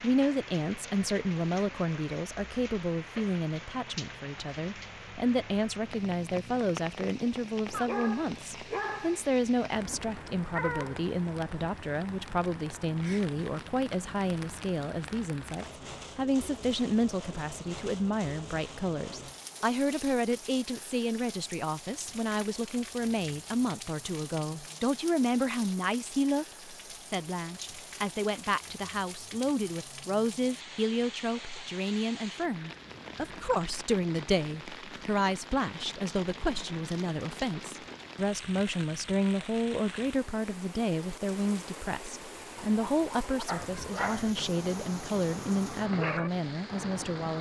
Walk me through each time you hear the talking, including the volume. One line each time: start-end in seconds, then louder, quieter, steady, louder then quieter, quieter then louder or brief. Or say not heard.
0.0-47.3 steady.